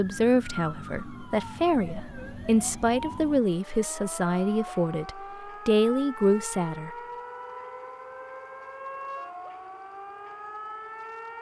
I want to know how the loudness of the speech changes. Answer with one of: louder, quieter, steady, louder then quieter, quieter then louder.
louder.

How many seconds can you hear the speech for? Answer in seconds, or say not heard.
7 s.